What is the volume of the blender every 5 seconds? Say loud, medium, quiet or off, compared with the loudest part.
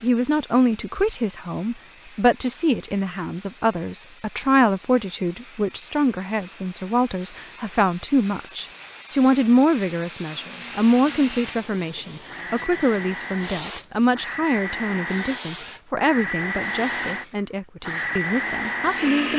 off, off, medium, loud.